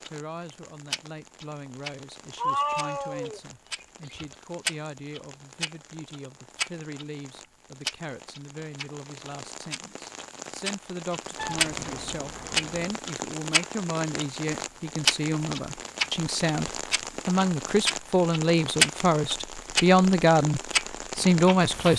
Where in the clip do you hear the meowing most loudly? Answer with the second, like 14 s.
3 s.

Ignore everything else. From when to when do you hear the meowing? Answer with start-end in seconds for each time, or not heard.
2.4-4.3, 11.3-12.9.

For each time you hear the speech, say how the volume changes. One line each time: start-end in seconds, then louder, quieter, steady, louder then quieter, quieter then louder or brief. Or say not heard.
0.1-21.9 louder.